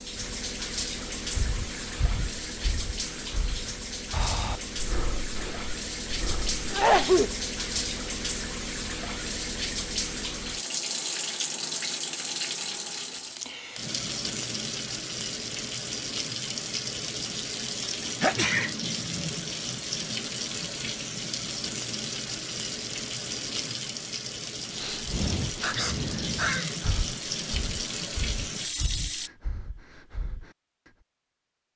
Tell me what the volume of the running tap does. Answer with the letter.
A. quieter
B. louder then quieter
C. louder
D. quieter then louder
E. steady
E.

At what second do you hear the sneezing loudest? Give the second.
7 s.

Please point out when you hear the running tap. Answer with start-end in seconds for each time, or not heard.
0.0-29.3.